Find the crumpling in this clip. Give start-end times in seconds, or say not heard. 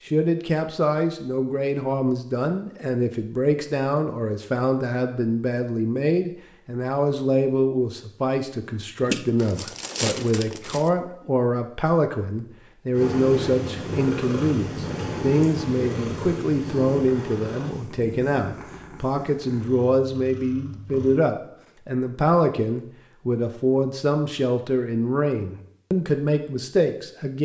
9.1-10.9.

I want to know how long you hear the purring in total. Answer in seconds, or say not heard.
8 s.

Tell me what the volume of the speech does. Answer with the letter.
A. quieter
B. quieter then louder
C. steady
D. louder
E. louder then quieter
C.